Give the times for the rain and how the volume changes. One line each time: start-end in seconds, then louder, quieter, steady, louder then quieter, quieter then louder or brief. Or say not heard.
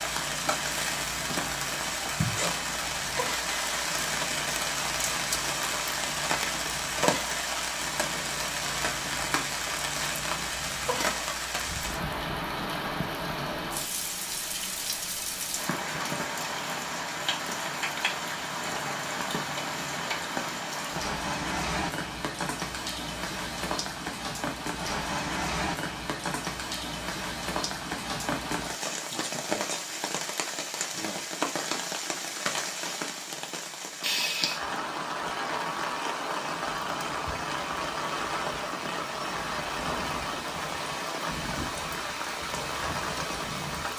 0.0-43.9 steady.